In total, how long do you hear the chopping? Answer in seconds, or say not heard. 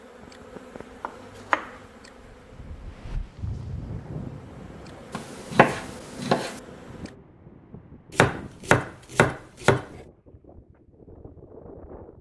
4 s.